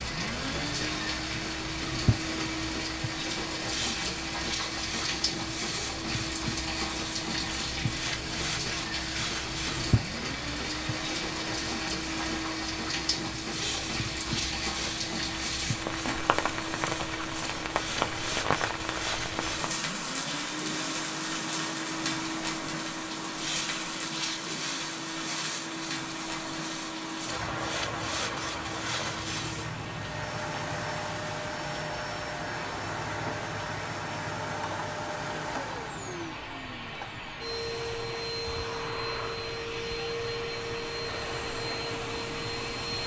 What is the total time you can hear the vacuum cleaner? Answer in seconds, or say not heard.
43 s.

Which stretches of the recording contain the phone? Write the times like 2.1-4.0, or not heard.
not heard.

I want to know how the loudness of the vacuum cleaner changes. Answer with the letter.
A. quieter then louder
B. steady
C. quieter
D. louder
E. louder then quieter
B.